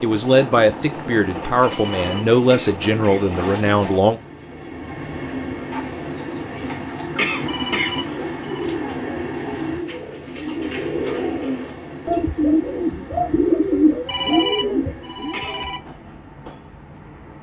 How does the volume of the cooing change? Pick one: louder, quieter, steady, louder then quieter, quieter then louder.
louder.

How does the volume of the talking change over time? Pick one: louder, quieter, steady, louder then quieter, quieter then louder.
steady.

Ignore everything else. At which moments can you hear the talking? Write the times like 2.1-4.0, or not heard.
0.0-4.2.